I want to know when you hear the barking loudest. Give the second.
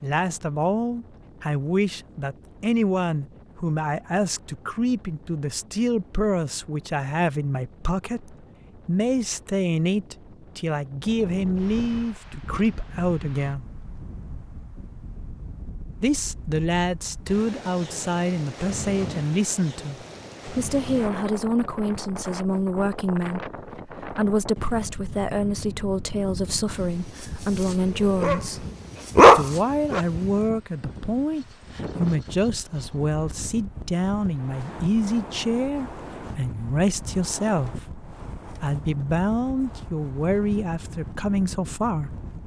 29 s.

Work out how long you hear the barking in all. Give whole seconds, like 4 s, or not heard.
2 s.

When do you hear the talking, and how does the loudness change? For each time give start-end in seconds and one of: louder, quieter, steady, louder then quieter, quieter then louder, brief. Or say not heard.
0.0-13.7 steady
16.0-28.6 steady
29.3-42.1 steady.